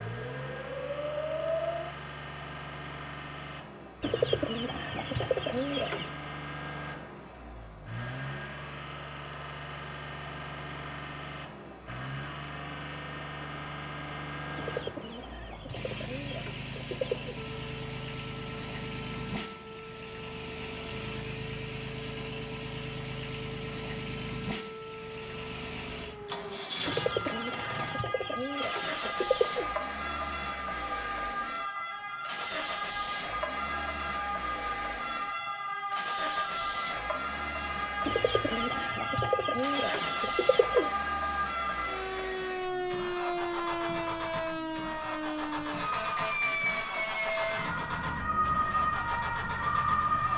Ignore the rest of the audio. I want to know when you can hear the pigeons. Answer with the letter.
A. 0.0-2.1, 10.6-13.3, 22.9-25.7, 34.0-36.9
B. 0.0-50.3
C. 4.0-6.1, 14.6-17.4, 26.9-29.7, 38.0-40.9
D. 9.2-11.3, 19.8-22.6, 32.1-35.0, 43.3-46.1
C.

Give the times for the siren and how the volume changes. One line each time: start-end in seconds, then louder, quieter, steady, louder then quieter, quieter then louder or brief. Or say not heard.
0.0-1.9 brief
17.4-50.3 louder.